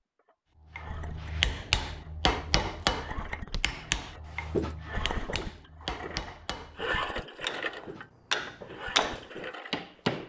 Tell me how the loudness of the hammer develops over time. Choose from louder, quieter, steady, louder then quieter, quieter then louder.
quieter then louder.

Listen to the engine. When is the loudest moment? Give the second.
7 s.